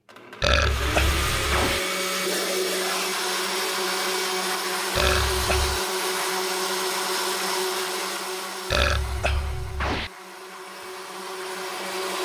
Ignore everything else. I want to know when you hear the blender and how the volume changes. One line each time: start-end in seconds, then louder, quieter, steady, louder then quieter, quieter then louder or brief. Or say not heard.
0.1-12.2 quieter.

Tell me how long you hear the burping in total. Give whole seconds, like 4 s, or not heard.
4 s.